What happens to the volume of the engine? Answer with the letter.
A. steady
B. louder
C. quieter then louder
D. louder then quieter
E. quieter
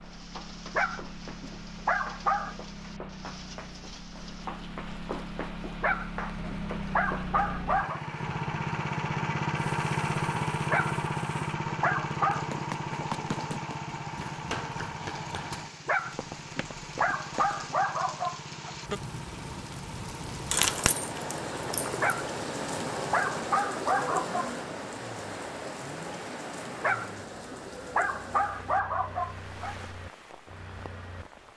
D.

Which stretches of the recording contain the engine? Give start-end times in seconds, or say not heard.
0.0-31.2.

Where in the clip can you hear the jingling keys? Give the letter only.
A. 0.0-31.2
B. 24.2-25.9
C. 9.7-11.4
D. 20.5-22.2
D.